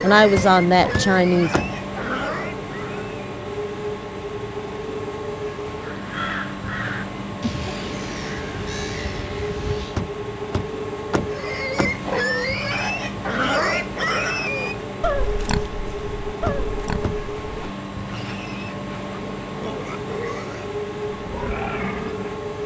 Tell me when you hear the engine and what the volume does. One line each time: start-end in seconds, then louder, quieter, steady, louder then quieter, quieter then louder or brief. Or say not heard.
0.0-22.6 steady.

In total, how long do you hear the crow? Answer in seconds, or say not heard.
4 s.